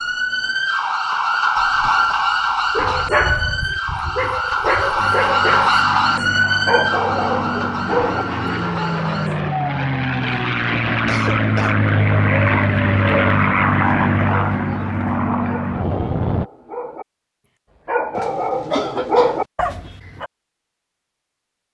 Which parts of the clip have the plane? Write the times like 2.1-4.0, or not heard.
5.0-16.4.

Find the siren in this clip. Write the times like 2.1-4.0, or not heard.
0.0-9.5.